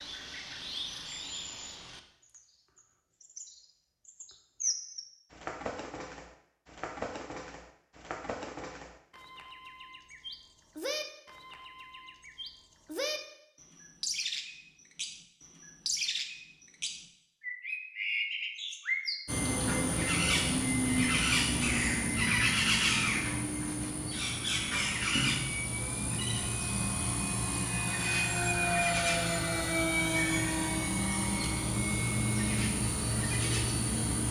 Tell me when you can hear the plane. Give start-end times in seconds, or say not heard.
19.2-34.2.